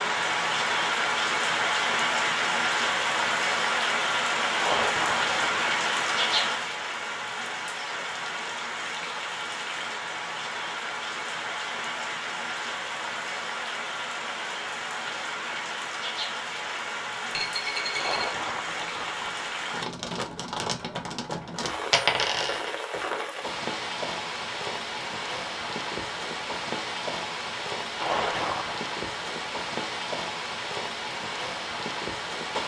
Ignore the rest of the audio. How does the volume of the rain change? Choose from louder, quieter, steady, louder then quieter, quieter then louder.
quieter.